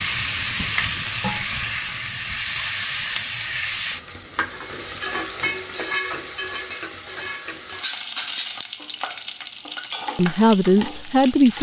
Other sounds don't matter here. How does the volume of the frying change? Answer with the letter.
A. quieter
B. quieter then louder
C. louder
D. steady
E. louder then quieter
A.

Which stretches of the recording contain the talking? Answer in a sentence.
You can hear the talking from 10.2 to 11.5 s.